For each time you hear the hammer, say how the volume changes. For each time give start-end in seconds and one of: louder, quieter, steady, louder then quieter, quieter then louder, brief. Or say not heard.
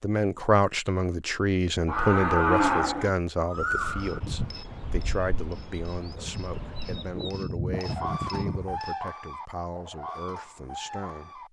4.0-8.9 quieter then louder.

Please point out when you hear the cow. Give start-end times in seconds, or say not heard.
1.9-3.1.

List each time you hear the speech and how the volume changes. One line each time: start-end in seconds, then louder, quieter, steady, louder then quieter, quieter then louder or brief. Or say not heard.
0.0-11.4 quieter.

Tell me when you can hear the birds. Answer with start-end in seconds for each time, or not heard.
3.5-11.4.